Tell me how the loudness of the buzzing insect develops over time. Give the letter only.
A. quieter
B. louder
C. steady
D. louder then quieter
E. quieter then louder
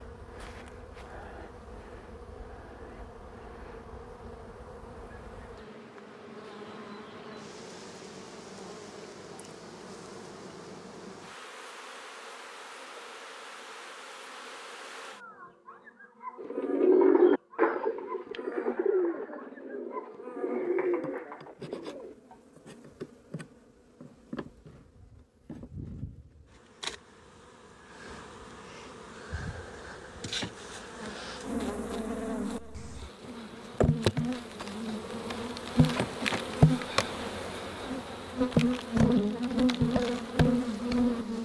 B.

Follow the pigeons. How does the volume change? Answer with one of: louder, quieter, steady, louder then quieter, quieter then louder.
quieter.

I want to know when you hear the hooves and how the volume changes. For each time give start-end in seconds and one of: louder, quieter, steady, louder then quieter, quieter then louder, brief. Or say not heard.
not heard.